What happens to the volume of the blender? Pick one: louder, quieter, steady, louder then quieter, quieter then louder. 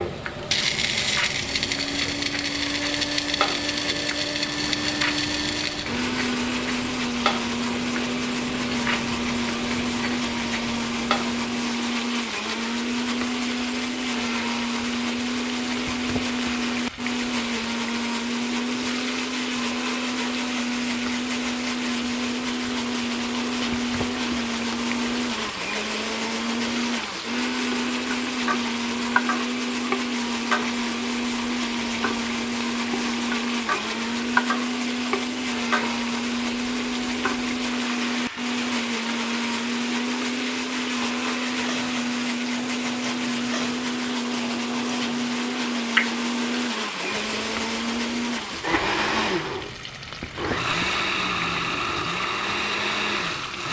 steady.